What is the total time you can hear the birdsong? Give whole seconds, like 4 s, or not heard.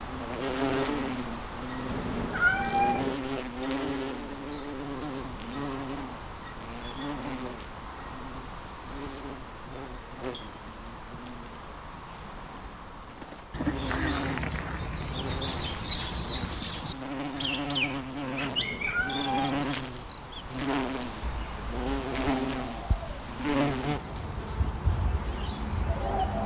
13 s.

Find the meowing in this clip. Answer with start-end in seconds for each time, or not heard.
1.9-3.1, 18.4-19.7.